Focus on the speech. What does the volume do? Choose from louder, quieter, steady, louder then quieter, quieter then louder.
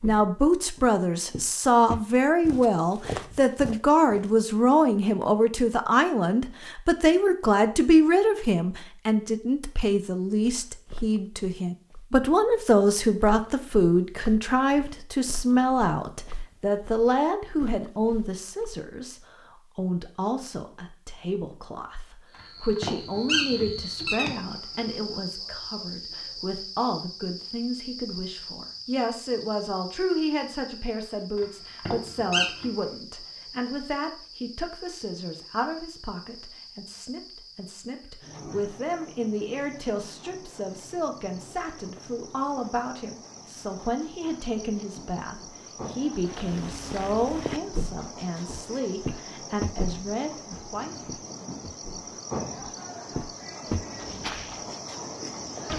quieter.